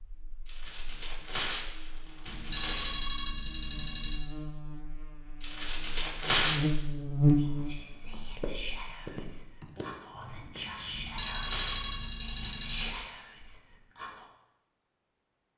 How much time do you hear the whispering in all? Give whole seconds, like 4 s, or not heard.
7 s.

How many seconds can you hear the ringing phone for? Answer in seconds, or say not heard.
4 s.